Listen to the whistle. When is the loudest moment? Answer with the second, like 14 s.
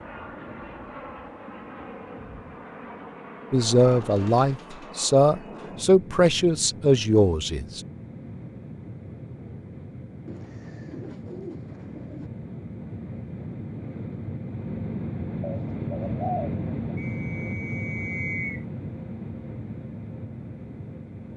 18 s.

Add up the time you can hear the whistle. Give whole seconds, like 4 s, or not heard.
2 s.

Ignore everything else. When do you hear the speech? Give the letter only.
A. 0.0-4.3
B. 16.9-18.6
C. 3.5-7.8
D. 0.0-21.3
C.